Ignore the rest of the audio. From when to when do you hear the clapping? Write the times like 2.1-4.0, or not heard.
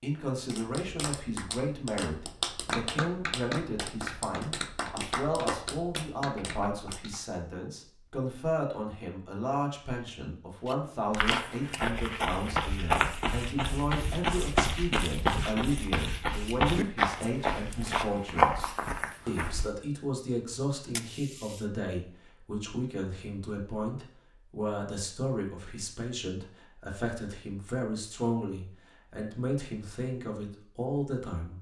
0.3-7.2.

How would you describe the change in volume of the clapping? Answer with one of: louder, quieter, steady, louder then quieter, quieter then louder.
louder then quieter.